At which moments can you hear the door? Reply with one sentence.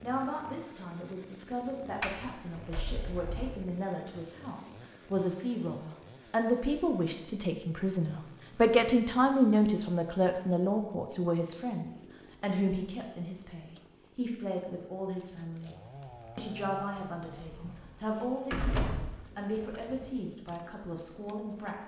You can hear the door from 2.0 to 3.6 s and from 17.6 to 19.1 s.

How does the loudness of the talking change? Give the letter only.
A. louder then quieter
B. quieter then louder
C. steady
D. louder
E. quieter
A.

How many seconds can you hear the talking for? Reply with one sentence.
The talking can be heard for 21 seconds in total.